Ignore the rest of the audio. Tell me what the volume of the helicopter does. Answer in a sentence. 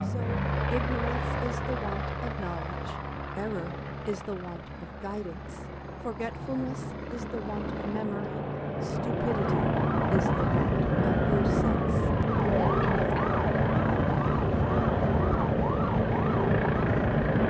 The loudness of the helicopter goes down, then up.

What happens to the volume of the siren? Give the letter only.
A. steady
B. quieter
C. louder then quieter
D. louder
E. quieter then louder
A.